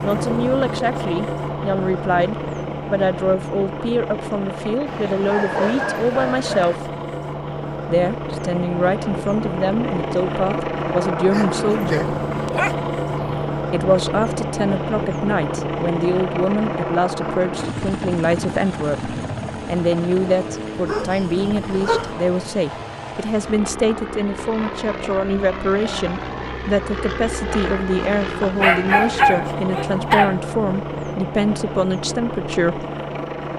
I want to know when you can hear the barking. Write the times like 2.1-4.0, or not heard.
4.8-6.8, 11.3-13.2, 20.9-22.1, 28.4-30.4.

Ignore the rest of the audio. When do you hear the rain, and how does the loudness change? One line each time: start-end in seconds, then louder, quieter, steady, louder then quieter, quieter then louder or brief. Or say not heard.
not heard.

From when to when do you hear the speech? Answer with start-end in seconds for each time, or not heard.
0.0-6.9, 7.8-12.2, 13.7-32.9.